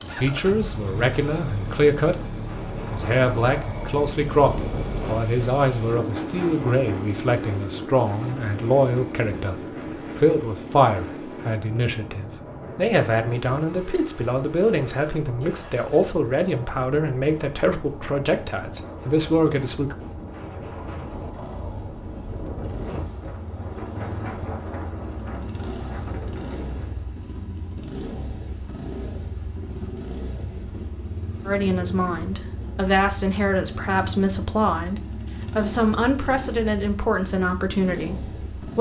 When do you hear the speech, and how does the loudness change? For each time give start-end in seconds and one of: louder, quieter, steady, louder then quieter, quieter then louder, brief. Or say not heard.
0.0-2.2 brief
2.9-19.9 steady
31.4-38.7 steady.